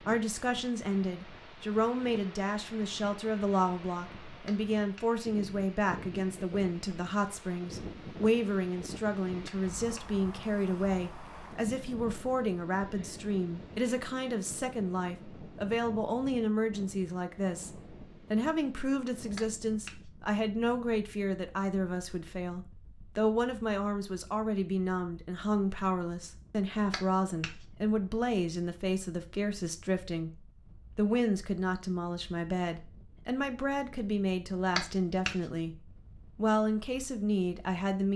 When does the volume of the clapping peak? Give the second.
35 s.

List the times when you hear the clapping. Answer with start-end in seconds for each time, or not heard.
4.5-5.0, 9.4-10.1, 19.4-19.9, 26.9-27.6, 34.8-35.4.